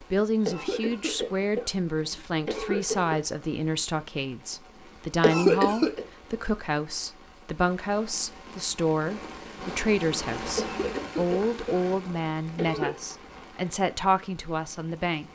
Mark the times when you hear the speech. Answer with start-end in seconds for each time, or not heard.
0.0-15.2.